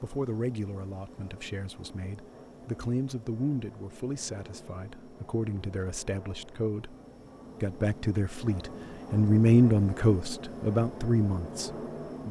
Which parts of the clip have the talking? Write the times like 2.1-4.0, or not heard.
0.0-7.0, 7.6-12.2.